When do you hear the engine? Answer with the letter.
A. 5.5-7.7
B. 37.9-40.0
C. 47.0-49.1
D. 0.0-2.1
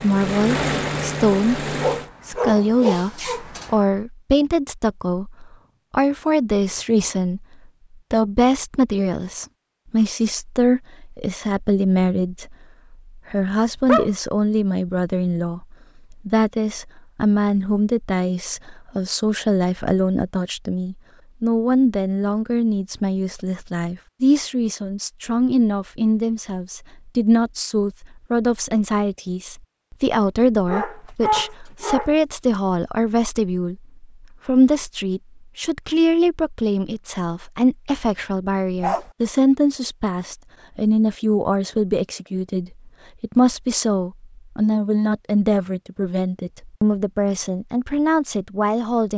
D.